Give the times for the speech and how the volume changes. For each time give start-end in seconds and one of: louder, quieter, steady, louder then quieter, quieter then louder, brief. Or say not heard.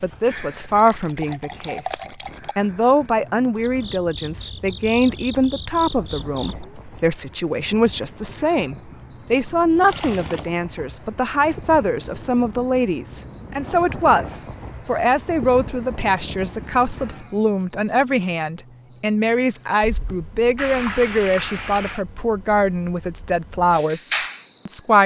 0.0-25.0 steady.